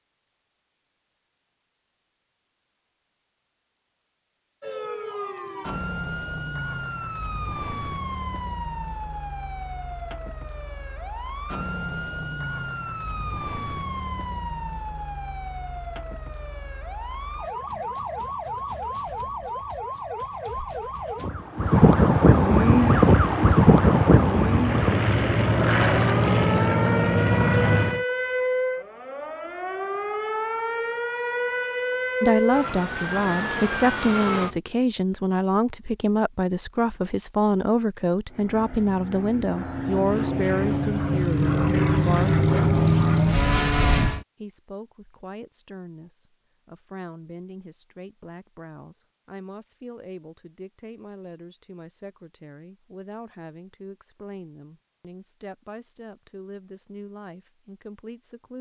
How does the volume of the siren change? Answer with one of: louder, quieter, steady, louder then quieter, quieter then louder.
louder then quieter.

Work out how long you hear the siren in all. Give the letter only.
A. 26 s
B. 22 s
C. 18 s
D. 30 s
D.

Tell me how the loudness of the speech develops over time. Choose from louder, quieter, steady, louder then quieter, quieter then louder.
quieter.